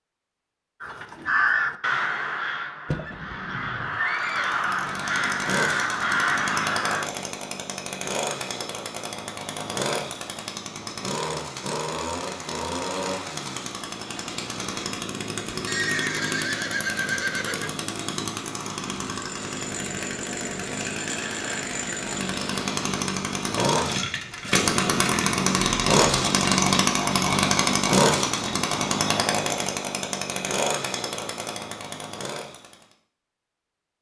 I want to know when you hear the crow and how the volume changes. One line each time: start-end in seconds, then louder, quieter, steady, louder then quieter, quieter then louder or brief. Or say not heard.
0.8-7.1 quieter then louder.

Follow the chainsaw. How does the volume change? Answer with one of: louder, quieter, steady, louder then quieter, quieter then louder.
louder.